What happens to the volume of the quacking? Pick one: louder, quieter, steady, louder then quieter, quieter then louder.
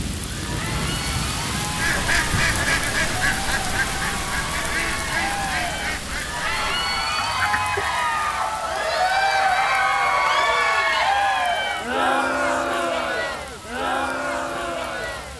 quieter.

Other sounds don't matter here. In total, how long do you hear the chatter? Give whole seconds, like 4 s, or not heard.
15 s.